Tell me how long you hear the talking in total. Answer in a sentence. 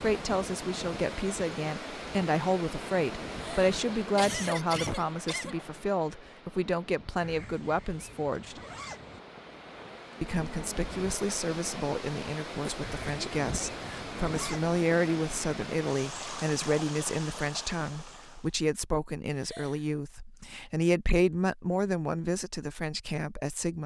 The talking can be heard for 22 seconds in total.